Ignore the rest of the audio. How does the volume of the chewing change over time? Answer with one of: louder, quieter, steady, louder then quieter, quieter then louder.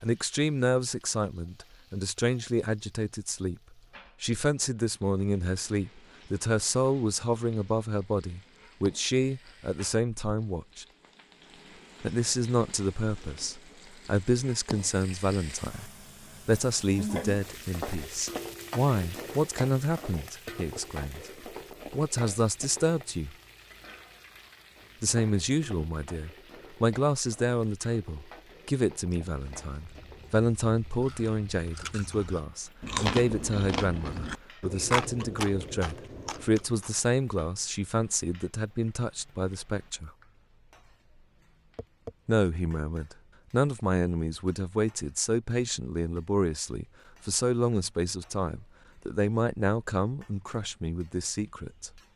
louder then quieter.